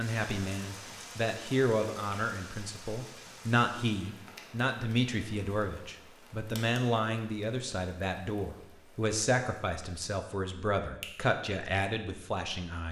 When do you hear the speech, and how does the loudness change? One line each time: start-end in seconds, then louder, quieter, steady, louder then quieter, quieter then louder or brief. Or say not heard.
0.0-12.8 steady.